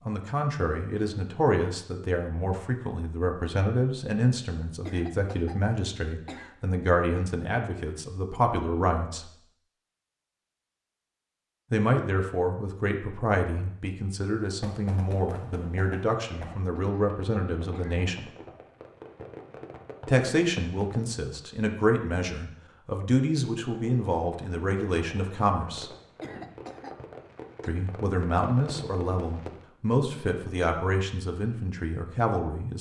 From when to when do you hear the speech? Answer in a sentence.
The speech can be heard from 0.1 to 9.3 s, from 11.7 to 18.3 s, from 20.1 to 25.9 s and from 27.6 to 32.7 s.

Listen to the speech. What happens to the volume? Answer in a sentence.
The volume of the speech stays about the same.